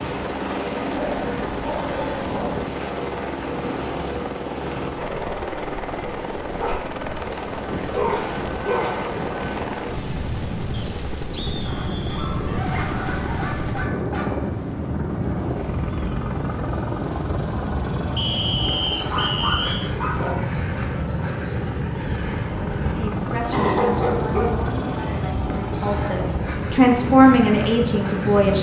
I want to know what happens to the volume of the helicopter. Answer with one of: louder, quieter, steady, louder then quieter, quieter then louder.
steady.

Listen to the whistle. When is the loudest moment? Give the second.
19 s.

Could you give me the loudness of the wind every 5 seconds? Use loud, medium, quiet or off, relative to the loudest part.
medium, medium, loud, loud, loud, loud.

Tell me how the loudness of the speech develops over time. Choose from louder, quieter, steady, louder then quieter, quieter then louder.
louder.